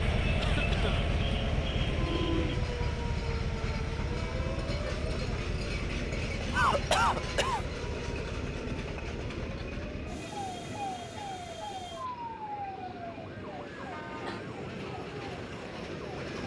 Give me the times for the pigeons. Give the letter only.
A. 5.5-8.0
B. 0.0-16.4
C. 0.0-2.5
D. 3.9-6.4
C.